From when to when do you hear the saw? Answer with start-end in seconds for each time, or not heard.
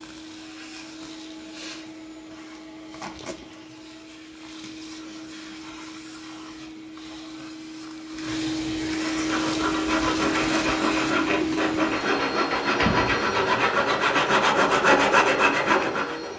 9.0-16.3.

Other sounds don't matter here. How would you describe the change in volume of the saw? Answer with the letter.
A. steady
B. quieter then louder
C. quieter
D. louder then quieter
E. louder
E.